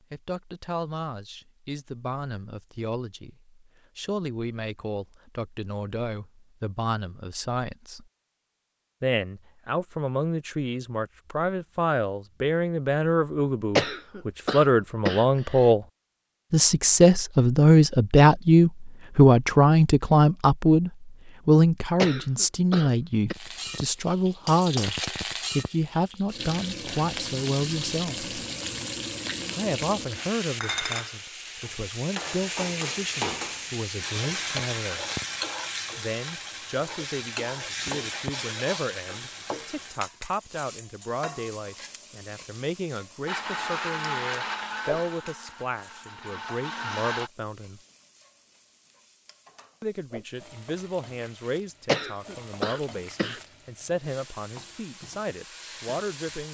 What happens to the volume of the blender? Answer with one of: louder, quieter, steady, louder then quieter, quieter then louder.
quieter then louder.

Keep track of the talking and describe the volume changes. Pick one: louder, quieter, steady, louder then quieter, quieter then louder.
louder then quieter.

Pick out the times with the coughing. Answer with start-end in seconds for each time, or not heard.
13.8-15.7, 21.9-23.4, 51.9-53.4.